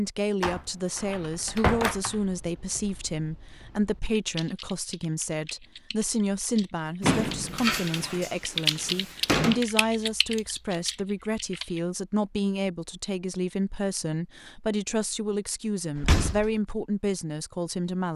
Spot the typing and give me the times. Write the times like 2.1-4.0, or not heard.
1.0-11.8.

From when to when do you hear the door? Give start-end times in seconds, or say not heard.
0.4-2.0, 7.0-9.6, 15.9-16.6.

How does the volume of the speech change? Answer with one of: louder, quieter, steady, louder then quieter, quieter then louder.
steady.